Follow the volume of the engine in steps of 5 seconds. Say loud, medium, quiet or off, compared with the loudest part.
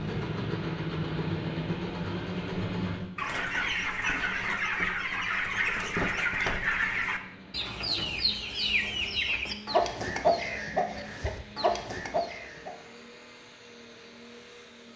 loud, quiet, quiet.